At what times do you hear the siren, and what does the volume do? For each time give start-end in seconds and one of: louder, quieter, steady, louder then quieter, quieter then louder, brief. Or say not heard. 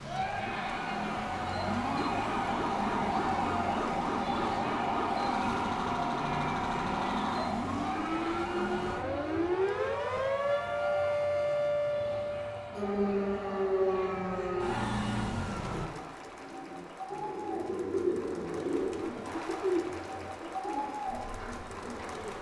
0.0-15.9 steady.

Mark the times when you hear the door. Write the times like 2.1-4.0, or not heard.
not heard.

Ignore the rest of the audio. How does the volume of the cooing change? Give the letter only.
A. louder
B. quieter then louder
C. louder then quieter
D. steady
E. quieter
C.